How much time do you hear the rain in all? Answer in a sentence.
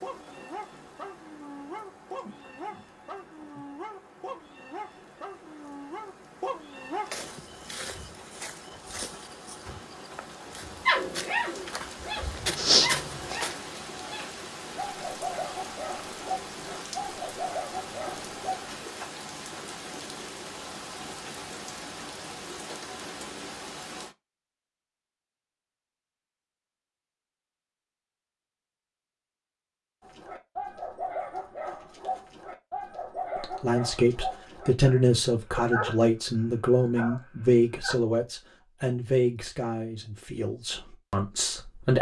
The rain can be heard for 24 seconds in total.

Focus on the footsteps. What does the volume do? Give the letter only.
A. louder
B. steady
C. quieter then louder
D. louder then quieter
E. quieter
C.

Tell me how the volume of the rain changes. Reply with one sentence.
The volume of the rain goes up.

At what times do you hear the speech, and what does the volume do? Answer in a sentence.
You can hear the speech from 33.4 to 41.9 s, getting quieter.